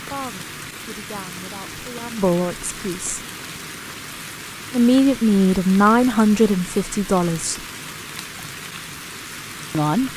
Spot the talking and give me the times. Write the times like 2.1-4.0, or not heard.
0.0-3.2, 4.7-7.6, 9.7-10.1.